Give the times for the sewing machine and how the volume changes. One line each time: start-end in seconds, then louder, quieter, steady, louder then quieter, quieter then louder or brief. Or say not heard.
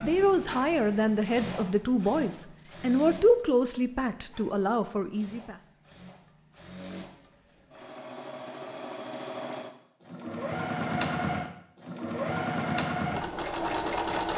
0.0-14.3 quieter then louder.